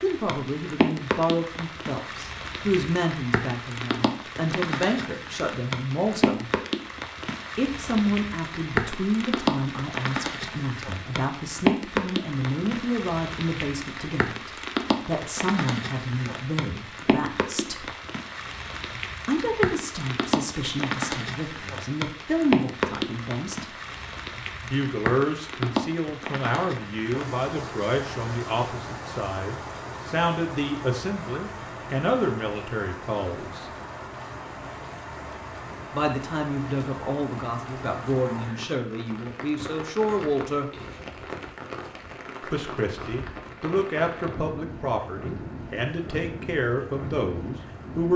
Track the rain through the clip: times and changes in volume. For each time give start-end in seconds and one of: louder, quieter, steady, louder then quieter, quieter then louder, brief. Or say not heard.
0.0-48.1 quieter.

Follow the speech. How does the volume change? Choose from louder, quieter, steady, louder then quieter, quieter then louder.
steady.